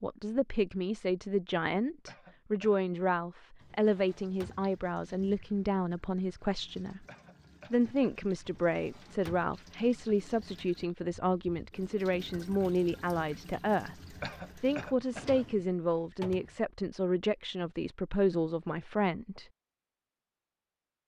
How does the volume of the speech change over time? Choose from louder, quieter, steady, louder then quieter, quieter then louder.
steady.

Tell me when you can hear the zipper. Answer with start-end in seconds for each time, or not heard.
not heard.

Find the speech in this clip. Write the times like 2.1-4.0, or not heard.
0.0-7.0, 7.7-13.9, 14.6-19.4.